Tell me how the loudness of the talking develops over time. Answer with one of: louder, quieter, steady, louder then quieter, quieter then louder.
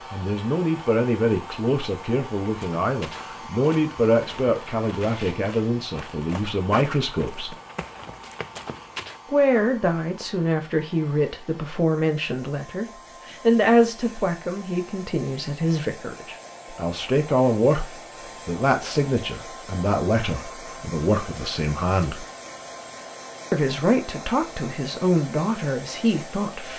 steady.